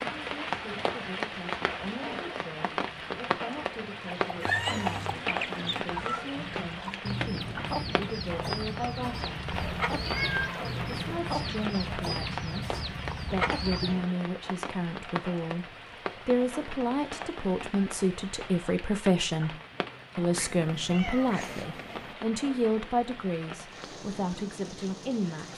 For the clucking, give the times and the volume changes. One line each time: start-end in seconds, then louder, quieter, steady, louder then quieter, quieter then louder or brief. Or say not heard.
3.9-14.1 steady.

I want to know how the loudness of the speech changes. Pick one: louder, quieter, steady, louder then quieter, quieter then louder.
louder.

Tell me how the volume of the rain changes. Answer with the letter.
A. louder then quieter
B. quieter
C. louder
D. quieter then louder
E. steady
B.